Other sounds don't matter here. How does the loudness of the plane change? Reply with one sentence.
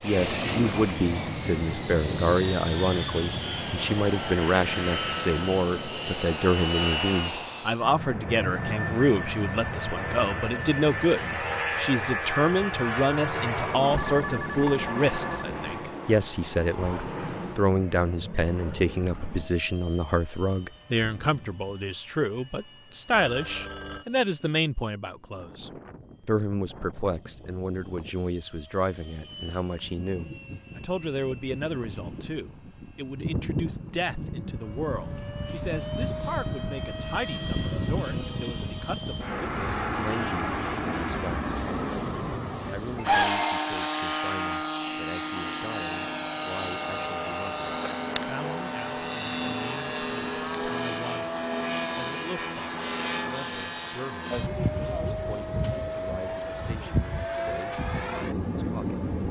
The volume of the plane goes down, then up.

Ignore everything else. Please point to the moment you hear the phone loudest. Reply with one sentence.
The volume of the phone peaks at 43 seconds.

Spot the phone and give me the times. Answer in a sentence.
You can hear the phone from 13.9 to 15.4 s, from 23.1 to 24.1 s and from 43.0 to 43.5 s.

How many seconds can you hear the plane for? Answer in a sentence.
The plane can be heard for 59 seconds in total.